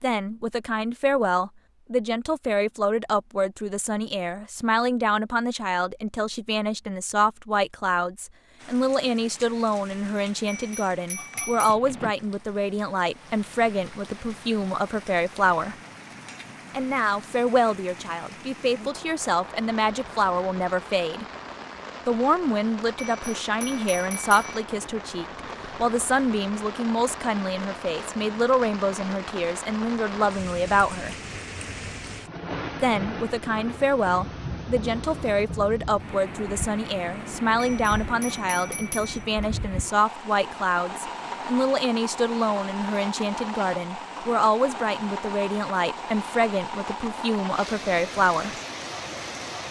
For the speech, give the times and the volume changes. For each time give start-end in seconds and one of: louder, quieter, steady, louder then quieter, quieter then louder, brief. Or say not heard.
0.0-15.8 steady
16.7-21.2 quieter then louder
22.1-31.1 steady
32.8-48.5 steady.